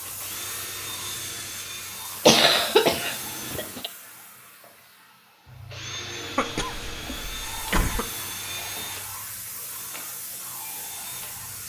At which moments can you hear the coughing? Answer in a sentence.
The coughing can be heard from 2.2 to 3.9 s and from 6.3 to 8.1 s.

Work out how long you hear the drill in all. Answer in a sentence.
The drill can be heard for 10 seconds in total.